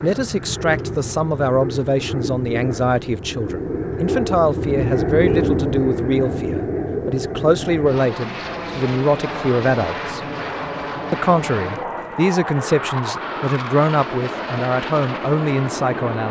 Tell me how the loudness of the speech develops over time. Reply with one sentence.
The volume of the speech stays about the same.